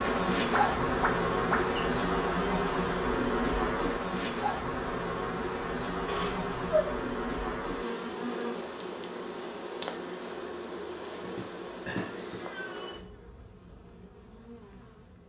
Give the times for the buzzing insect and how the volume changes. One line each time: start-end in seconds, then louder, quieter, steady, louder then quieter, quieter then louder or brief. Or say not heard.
0.0-15.2 quieter.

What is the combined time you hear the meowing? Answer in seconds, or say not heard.
4 s.